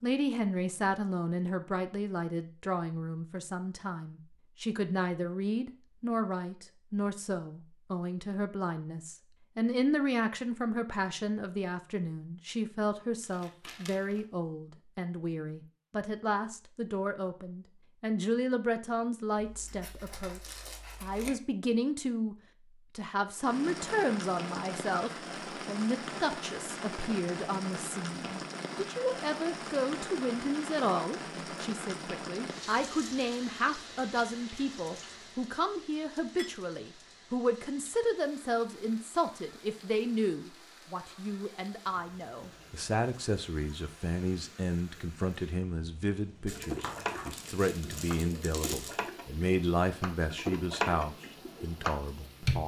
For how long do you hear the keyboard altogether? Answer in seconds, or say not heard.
6 s.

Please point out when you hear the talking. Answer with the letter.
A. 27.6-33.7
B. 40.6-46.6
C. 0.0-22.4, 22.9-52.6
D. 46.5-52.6
C.